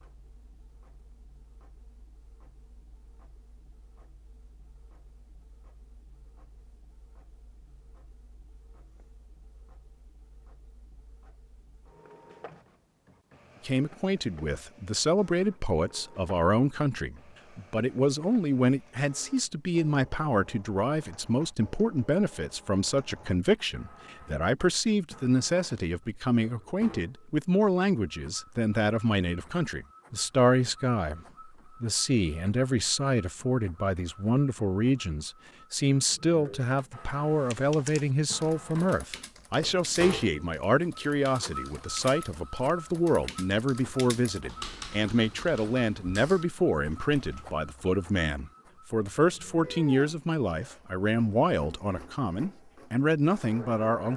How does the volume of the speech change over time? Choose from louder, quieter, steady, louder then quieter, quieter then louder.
steady.